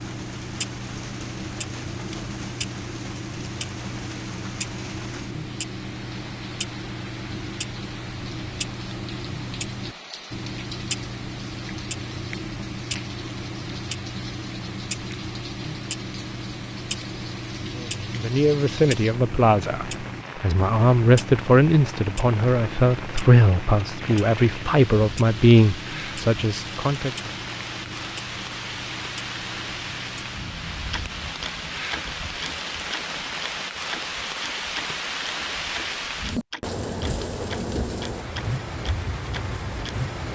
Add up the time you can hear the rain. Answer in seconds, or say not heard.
40 s.